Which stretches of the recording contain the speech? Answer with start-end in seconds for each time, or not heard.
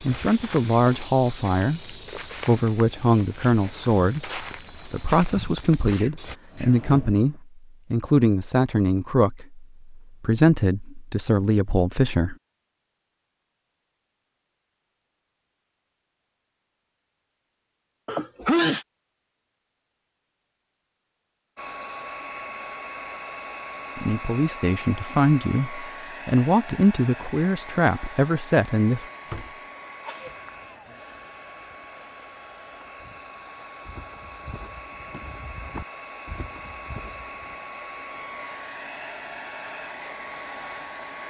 0.0-12.3, 23.9-29.1.